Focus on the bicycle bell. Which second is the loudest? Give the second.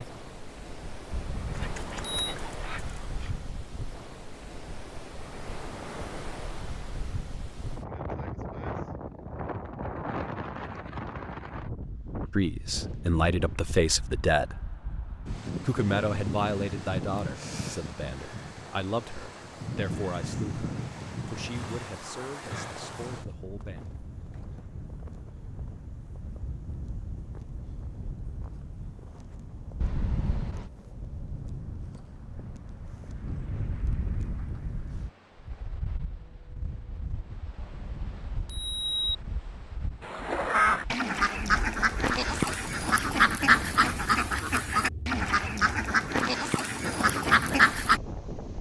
39 s.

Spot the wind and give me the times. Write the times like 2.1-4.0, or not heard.
0.0-48.5.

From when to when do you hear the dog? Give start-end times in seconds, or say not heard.
1.5-3.4.